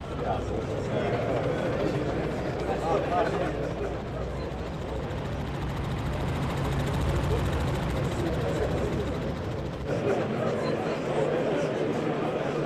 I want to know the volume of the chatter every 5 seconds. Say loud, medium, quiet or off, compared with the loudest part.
loud, medium, loud.